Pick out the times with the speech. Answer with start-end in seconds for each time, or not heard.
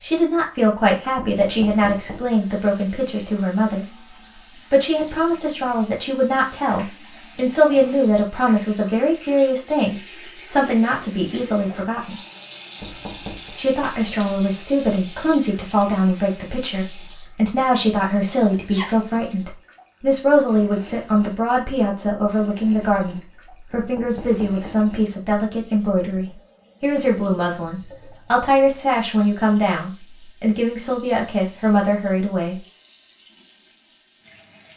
0.0-3.9, 4.7-12.2, 13.6-32.6.